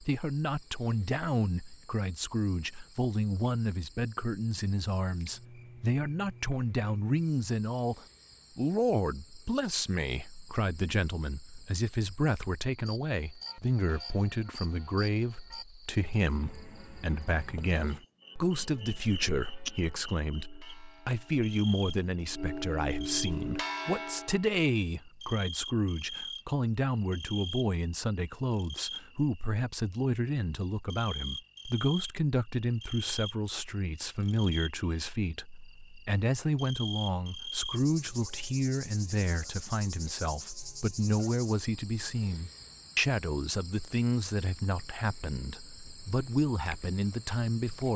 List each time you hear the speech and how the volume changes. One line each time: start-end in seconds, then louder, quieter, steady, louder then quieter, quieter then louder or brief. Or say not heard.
0.0-47.9 steady.